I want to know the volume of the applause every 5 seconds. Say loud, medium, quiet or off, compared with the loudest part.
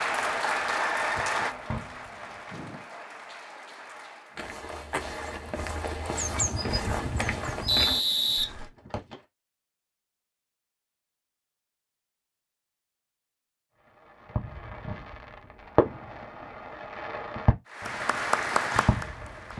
loud, off, off, loud.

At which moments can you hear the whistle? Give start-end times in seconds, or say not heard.
7.7-9.2.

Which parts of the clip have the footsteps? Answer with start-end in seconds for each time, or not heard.
4.3-8.8.